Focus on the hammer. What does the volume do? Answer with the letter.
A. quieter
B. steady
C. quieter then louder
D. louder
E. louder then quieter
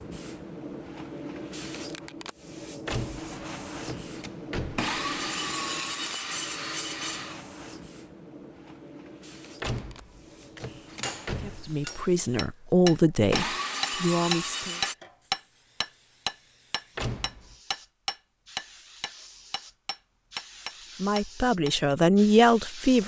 E.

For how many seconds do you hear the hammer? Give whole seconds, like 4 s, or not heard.
11 s.